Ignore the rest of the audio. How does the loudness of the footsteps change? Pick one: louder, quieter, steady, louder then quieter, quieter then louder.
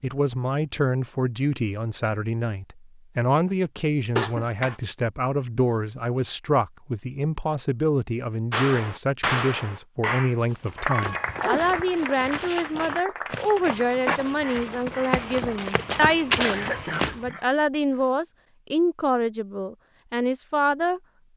louder.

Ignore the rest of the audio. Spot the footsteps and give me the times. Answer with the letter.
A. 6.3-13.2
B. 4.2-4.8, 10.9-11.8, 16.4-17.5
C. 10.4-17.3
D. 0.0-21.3
C.